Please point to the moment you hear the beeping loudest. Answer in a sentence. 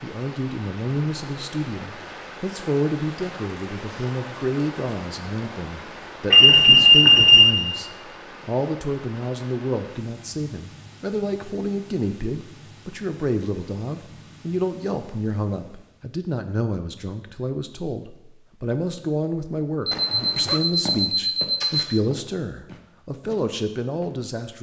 The volume of the beeping peaks at 7 seconds.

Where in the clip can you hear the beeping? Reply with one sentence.
The beeping can be heard from 6.3 to 7.5 s and from 19.9 to 21.9 s.